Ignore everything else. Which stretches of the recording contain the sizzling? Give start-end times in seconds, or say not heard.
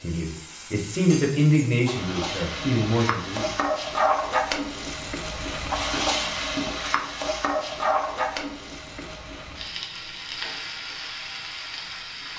0.0-12.3.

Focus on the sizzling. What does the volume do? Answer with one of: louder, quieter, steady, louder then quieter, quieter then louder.
louder then quieter.